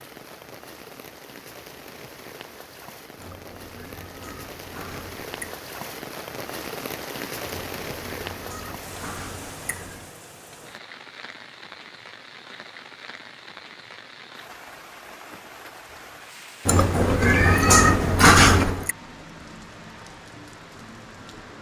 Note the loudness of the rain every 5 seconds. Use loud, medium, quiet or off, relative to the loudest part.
medium, loud, medium, medium, medium.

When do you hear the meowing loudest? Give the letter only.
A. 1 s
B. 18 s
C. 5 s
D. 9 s
B.